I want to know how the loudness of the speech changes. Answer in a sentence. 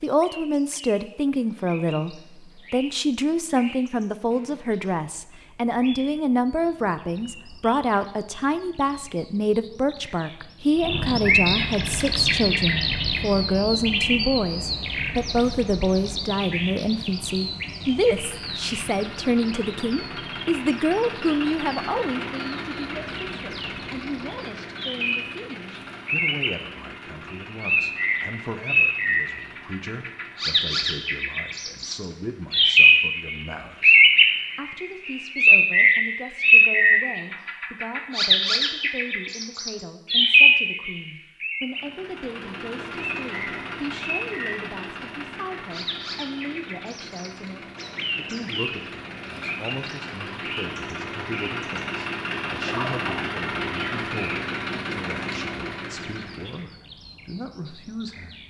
The volume of the speech goes down.